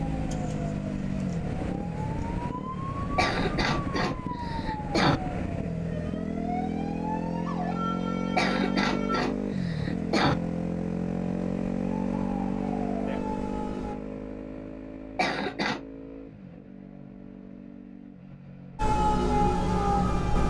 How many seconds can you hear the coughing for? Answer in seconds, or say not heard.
5 s.